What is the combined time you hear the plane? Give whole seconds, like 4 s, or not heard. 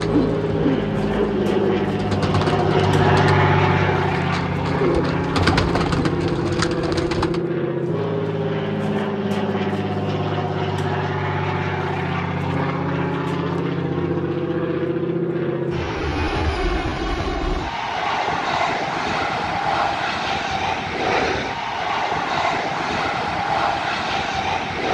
25 s.